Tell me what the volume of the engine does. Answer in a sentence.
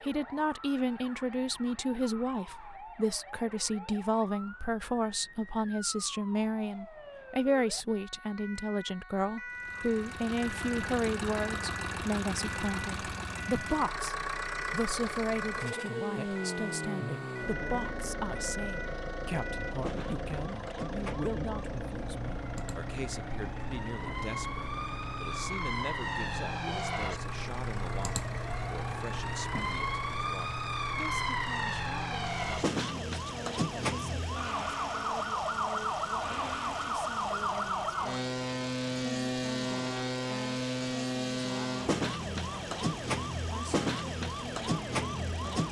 The volume of the engine goes down.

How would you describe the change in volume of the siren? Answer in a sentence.
The loudness of the siren goes up.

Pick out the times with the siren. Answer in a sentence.
The siren can be heard from 0.0 to 45.6 s.